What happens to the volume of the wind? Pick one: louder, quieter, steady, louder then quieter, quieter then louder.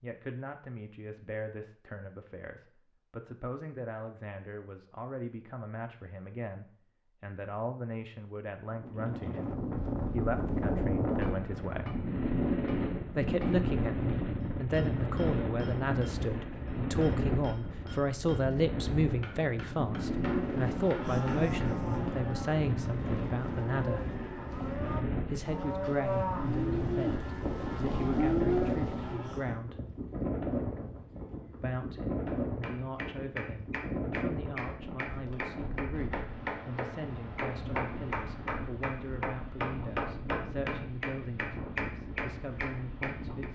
quieter.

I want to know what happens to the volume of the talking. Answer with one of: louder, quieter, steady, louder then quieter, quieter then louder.
louder then quieter.